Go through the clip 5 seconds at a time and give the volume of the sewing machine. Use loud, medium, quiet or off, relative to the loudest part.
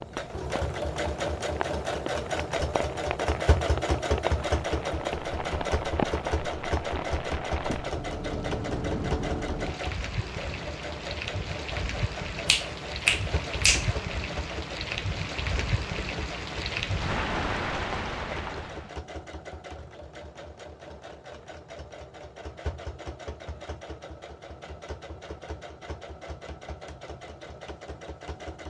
loud, loud, medium, medium, quiet, quiet.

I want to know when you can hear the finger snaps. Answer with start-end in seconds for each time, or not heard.
12.4-13.8.